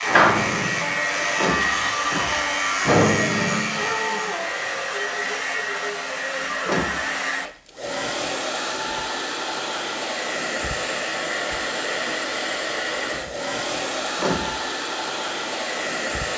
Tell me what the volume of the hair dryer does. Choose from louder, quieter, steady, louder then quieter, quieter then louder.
steady.